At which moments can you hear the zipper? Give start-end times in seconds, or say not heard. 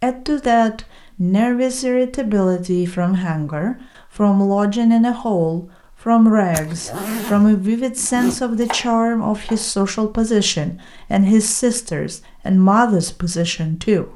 6.5-8.4.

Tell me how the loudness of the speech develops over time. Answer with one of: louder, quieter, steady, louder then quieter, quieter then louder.
steady.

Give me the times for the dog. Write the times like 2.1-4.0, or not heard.
not heard.